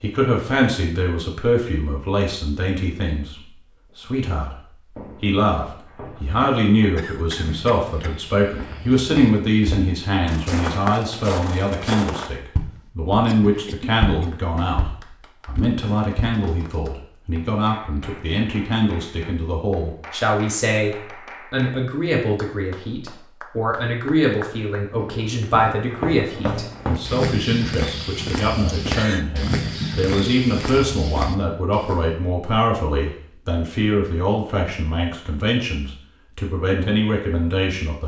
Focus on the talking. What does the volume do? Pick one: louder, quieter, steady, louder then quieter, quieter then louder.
steady.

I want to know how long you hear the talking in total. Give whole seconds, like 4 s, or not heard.
38 s.